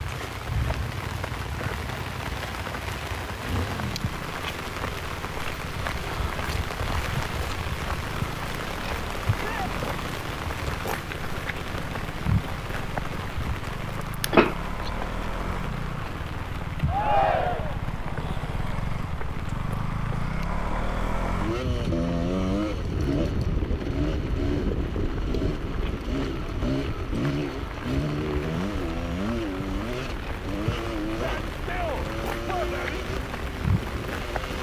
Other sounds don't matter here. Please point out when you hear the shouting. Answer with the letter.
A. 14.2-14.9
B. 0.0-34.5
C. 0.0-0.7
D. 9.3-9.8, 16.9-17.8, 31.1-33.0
D.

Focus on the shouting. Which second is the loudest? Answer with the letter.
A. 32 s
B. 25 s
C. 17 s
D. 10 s
C.